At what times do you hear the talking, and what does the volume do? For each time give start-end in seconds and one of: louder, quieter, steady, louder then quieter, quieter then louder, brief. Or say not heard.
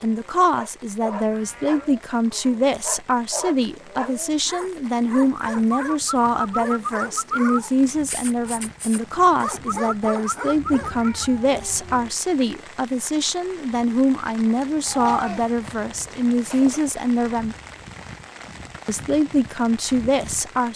0.0-17.6 steady
18.9-20.7 brief.